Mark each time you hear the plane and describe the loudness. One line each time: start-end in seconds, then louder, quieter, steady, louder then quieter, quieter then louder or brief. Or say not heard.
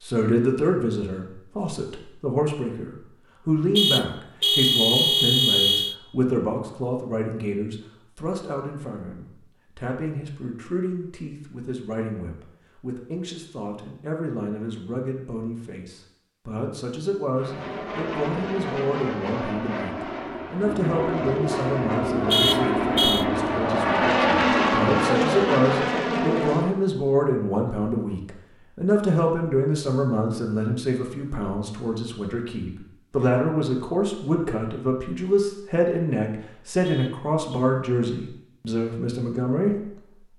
17.3-26.8 louder.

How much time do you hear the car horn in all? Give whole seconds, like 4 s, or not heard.
4 s.